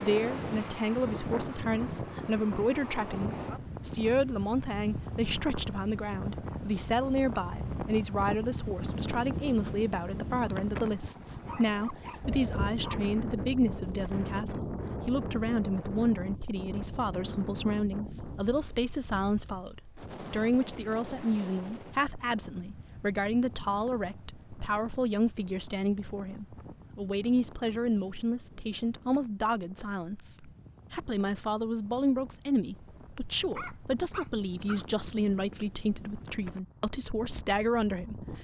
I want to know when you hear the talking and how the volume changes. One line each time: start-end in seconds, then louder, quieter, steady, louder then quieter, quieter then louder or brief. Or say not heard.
0.0-38.4 steady.